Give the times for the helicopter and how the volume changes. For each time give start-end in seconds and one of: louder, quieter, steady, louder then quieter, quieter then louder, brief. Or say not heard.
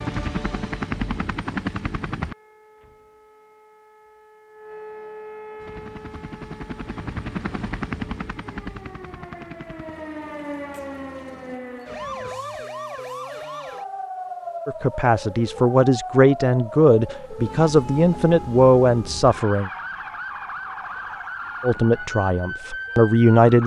0.0-2.4 brief
5.5-11.6 louder then quieter.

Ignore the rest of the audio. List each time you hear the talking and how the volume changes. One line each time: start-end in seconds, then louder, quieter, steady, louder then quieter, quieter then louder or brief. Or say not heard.
14.7-19.7 steady
21.6-23.6 brief.